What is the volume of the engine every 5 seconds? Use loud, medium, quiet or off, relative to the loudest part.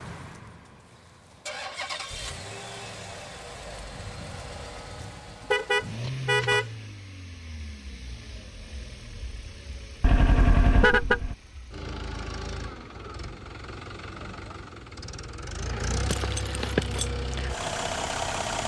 medium, medium, medium, loud.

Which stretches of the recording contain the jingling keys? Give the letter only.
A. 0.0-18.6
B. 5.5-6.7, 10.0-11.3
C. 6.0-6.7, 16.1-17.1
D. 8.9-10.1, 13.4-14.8
C.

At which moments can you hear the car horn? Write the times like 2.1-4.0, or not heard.
5.5-6.7, 10.0-11.3.